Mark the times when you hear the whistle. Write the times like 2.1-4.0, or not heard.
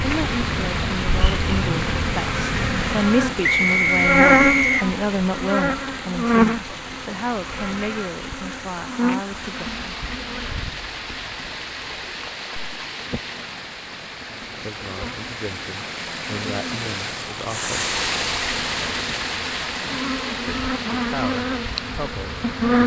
3.4-4.9.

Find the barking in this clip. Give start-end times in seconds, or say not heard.
not heard.